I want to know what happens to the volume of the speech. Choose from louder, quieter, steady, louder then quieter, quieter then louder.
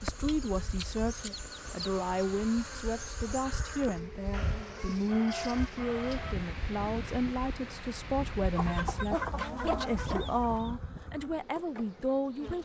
steady.